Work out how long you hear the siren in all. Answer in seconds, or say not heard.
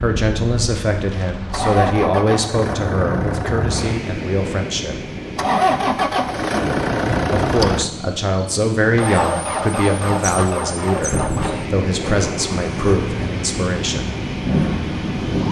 not heard.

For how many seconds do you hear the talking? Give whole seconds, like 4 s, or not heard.
12 s.